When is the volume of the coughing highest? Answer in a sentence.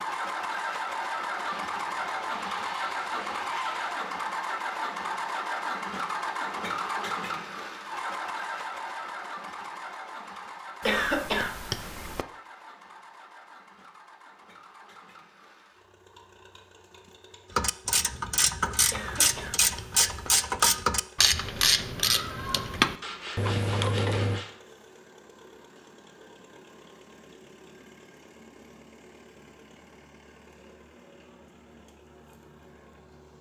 The loudest moment of the coughing is at 11 seconds.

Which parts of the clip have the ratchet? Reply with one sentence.
The ratchet can be heard from 17.6 to 24.4 s.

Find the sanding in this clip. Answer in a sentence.
The sanding can be heard from 1.4 to 4.0 s and from 23.0 to 24.6 s.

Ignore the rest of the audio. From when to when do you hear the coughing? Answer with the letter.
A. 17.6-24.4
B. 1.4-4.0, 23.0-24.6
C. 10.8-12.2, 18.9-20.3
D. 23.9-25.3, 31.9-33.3
C.